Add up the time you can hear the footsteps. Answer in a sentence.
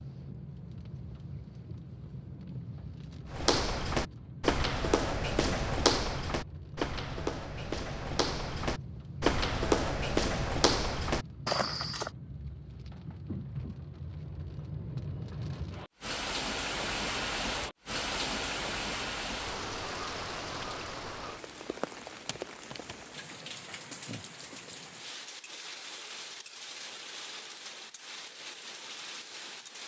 You can hear the footsteps for 9 seconds altogether.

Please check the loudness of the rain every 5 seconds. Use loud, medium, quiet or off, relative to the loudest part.
medium, medium, medium, loud, medium, medium.